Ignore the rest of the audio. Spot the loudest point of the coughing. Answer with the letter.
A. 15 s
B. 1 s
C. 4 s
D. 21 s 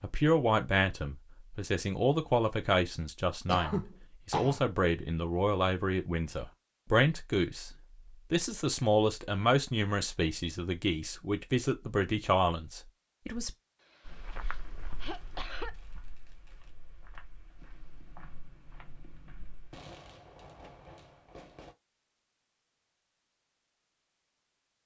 C.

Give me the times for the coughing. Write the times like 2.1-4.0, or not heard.
3.5-4.6, 13.8-15.7.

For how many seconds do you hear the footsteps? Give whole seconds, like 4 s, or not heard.
6 s.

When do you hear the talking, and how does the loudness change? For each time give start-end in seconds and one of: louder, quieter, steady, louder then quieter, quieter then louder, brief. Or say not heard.
0.0-13.5 steady.